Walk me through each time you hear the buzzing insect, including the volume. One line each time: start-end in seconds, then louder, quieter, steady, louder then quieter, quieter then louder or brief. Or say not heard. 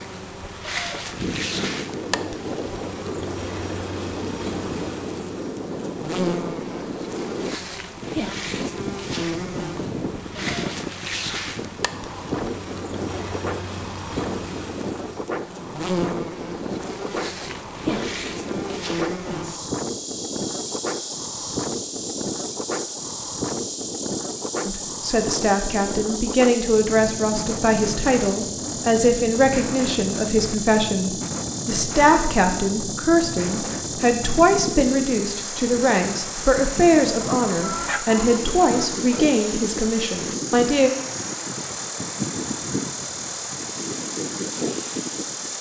0.0-45.5 steady.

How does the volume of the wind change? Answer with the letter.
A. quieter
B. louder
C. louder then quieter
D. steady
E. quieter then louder
D.